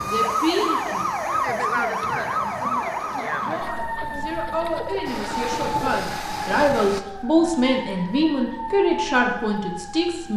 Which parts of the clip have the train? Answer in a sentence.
The train can be heard from 5.0 to 7.0 s.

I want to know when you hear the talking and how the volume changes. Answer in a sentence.
You can hear the talking from 0.0 to 10.3 s, getting quieter then louder.